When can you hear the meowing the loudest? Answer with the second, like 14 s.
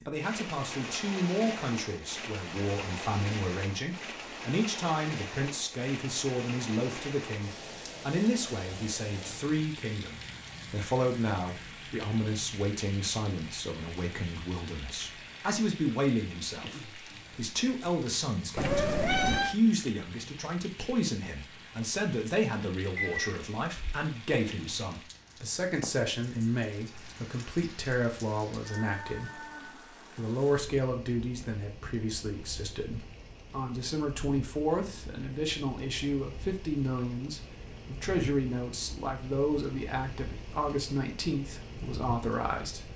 19 s.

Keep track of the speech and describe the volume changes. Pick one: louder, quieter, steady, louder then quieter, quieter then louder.
steady.